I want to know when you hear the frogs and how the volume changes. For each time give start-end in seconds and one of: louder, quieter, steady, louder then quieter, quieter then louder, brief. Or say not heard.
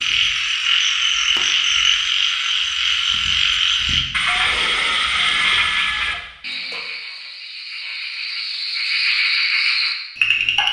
0.0-10.6 quieter then louder.